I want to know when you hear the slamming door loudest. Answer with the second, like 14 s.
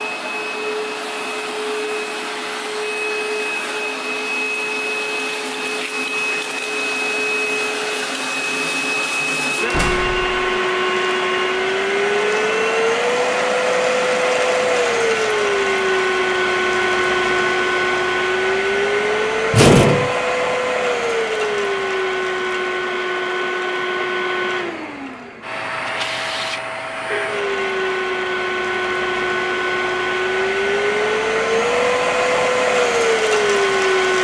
20 s.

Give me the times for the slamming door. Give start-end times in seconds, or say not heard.
9.7-10.4, 19.5-20.1.